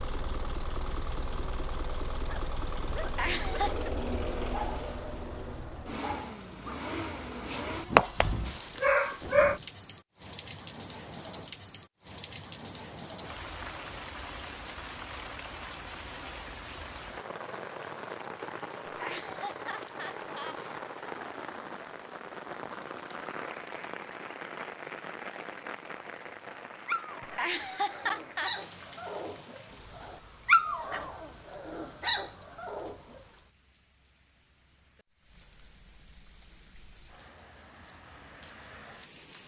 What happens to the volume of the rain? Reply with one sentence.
The loudness of the rain goes down.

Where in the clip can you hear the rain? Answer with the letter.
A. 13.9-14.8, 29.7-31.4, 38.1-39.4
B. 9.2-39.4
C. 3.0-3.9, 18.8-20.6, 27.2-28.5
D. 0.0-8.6
B.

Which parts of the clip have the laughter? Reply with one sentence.
The laughter can be heard from 3.0 to 3.9 s, from 18.8 to 20.6 s and from 27.2 to 28.5 s.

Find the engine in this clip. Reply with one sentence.
You can hear the engine from 0.0 to 8.6 s.